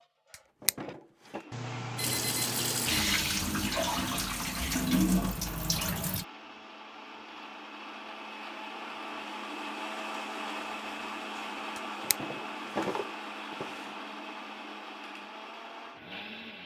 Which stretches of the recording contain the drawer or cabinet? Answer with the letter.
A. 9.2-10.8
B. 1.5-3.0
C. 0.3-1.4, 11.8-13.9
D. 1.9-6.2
C.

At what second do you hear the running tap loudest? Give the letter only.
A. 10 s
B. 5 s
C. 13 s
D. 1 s
B.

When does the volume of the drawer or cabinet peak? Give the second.
13 s.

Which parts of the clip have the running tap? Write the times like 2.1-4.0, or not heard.
1.9-6.2.